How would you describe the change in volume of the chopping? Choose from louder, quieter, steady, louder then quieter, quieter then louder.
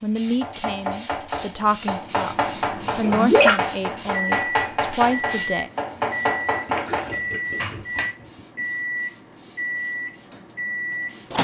steady.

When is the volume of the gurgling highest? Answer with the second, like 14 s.
3 s.